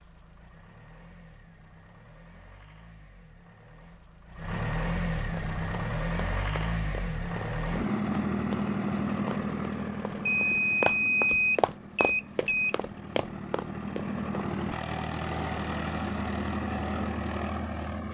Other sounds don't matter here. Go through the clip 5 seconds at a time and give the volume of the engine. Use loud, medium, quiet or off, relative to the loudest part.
medium, loud, medium, loud.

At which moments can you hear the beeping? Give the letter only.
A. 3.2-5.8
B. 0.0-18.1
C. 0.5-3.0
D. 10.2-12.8
D.